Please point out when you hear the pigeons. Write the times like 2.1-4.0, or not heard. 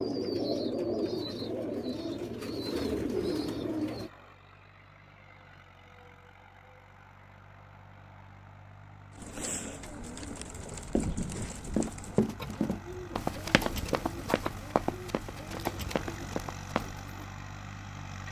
0.0-4.1, 9.2-17.3.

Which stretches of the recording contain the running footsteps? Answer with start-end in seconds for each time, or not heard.
10.4-17.0.